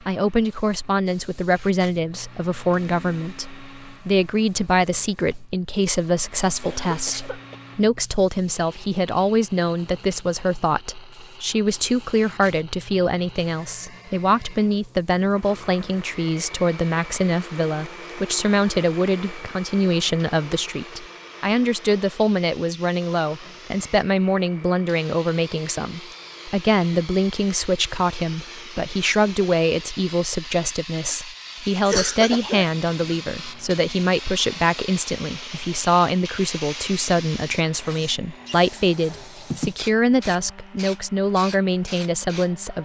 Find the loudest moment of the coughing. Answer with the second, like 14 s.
32 s.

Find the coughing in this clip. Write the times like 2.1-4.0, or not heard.
6.6-7.5, 31.9-33.1.